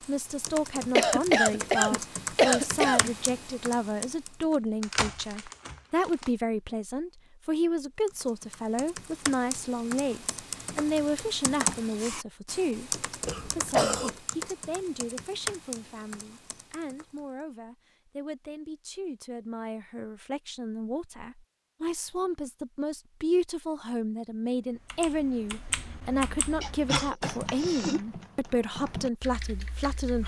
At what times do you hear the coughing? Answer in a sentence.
You can hear the coughing from 0.9 to 3.1 s, from 13.2 to 14.1 s and from 26.6 to 28.0 s.